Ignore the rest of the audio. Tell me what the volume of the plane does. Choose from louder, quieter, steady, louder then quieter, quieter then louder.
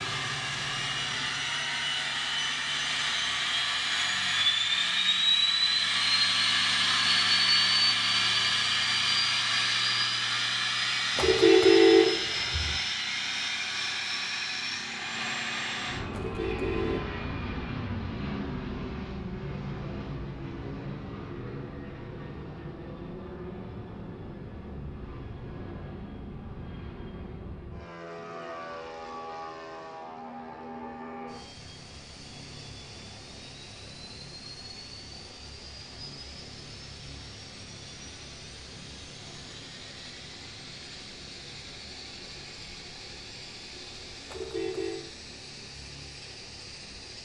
quieter.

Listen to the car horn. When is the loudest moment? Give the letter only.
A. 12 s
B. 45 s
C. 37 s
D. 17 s
A.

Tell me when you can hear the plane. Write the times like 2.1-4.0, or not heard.
0.0-47.1.